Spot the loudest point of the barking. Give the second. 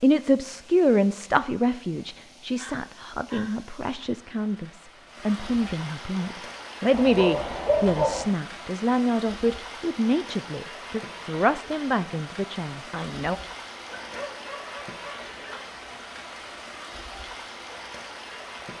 8 s.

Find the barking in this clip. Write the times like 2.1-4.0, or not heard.
2.5-3.6, 6.9-8.2, 13.9-15.7.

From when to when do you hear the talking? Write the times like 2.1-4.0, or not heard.
0.0-13.3.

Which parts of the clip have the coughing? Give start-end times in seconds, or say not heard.
not heard.